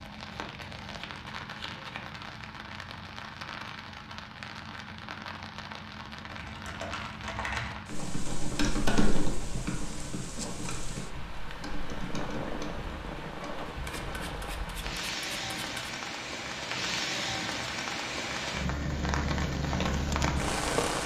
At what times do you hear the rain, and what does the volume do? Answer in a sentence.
The rain can be heard from 0.0 to 21.0 s, getting louder.